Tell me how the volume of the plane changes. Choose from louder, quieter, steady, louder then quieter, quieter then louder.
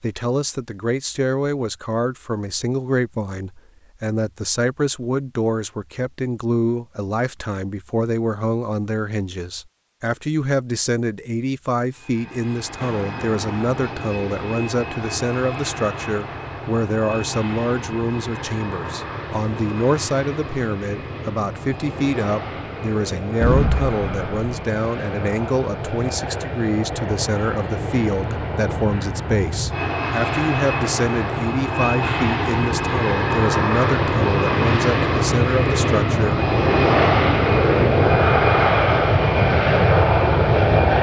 louder.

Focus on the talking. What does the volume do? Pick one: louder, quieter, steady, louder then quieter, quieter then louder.
steady.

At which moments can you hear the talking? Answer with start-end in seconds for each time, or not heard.
0.0-36.4.